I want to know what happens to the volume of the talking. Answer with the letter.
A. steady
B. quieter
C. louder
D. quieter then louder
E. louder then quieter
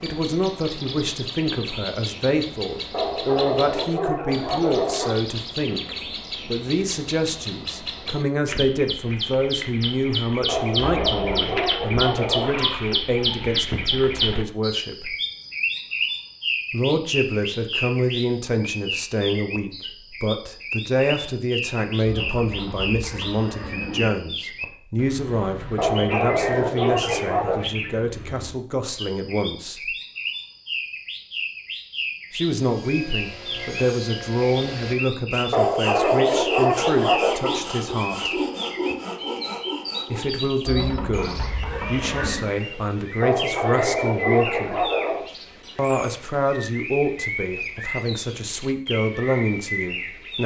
A.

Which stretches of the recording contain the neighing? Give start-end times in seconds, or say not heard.
10.9-11.5, 22.1-24.1, 40.6-42.5.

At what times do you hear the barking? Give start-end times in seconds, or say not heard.
2.9-5.2, 10.4-12.7, 25.8-27.6, 35.5-37.4, 43.2-45.2.